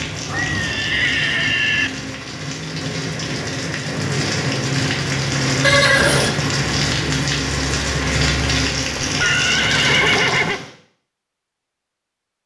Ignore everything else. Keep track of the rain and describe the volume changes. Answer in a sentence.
The loudness of the rain goes up.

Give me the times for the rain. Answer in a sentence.
The rain can be heard from 0.0 to 10.7 s.